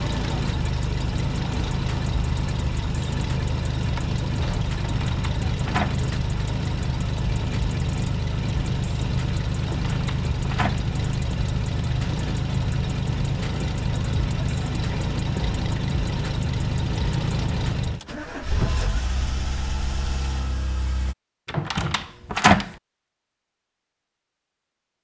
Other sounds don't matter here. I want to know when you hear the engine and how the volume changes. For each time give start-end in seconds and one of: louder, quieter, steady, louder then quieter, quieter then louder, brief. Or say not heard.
0.0-21.1 steady.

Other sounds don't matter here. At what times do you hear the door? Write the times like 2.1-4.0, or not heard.
4.8-6.0, 9.7-10.8, 21.4-22.8.